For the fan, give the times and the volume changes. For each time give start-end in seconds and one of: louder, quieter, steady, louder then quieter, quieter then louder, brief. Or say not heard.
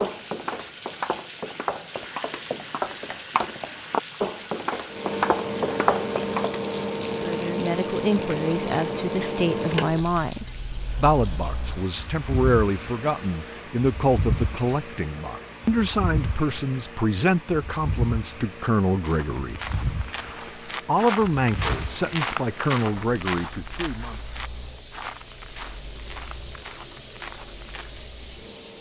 4.8-28.7 quieter.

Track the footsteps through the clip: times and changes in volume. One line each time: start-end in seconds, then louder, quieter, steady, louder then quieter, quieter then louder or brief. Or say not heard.
0.0-6.6 louder
18.9-28.1 louder then quieter.